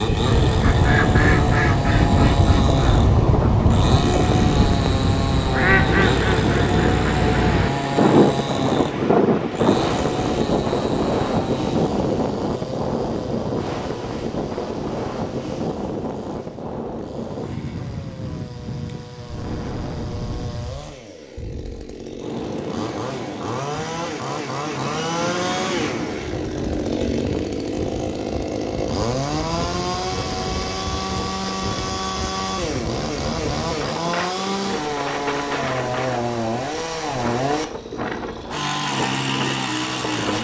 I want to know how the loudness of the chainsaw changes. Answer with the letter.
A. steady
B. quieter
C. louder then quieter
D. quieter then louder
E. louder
D.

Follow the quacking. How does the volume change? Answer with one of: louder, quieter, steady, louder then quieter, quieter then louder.
steady.